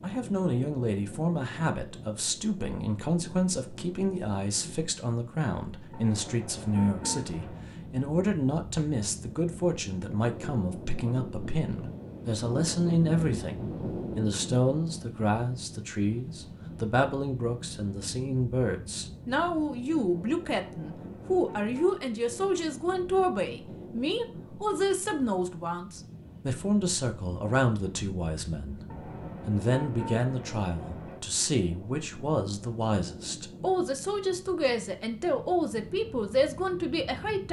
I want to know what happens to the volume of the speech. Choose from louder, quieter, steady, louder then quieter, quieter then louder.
steady.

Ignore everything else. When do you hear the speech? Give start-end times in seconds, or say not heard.
0.0-28.9, 29.4-37.4.